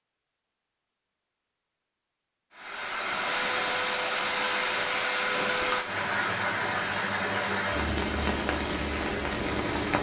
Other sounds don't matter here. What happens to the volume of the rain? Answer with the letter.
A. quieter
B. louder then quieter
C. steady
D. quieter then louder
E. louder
C.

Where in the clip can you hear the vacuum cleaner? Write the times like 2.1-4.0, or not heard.
3.2-5.8.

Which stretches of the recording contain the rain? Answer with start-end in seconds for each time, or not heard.
2.5-9.9.